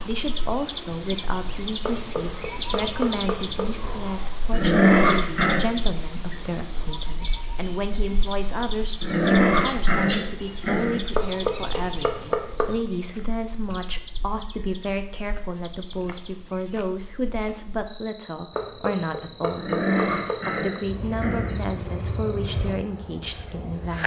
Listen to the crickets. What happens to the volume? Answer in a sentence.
The loudness of the crickets goes down, then up.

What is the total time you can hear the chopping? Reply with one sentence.
You can hear the chopping for 6 seconds altogether.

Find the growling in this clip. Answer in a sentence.
You can hear the growling from 4.5 to 5.7 s, from 9.0 to 11.1 s and from 19.6 to 21.7 s.